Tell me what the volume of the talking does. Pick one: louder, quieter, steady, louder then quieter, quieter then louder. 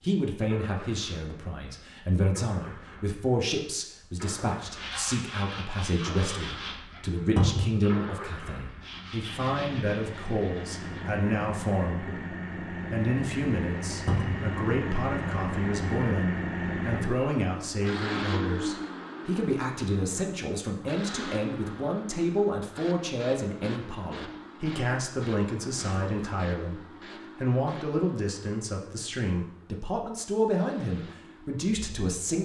steady.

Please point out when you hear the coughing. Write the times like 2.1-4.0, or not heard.
not heard.